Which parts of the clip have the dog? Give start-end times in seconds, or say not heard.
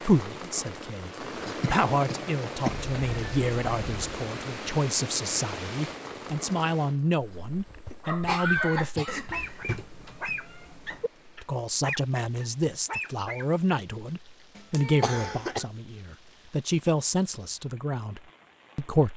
7.5-13.4.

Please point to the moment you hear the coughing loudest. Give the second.
8 s.